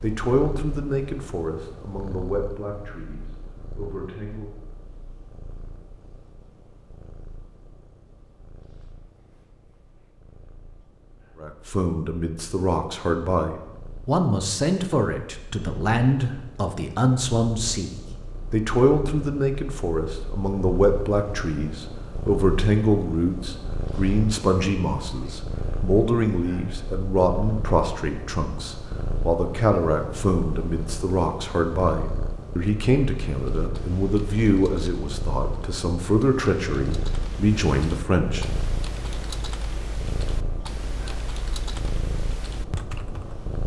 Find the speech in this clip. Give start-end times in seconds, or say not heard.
0.0-4.5, 11.4-38.5.